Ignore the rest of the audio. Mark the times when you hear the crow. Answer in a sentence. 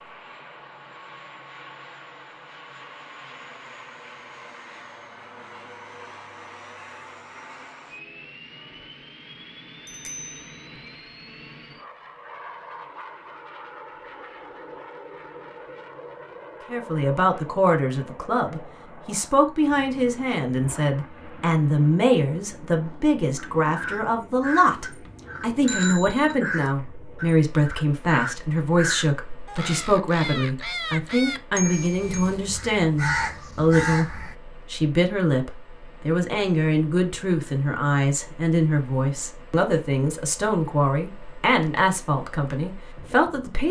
You can hear the crow from 23.4 to 34.4 s.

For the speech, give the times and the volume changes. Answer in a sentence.
You can hear the speech from 16.7 to 43.6 s, at a steady volume.